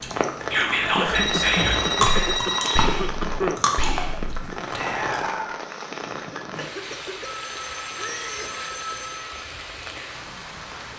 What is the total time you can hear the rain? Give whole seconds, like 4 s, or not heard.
11 s.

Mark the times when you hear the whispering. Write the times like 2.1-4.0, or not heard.
0.5-5.5.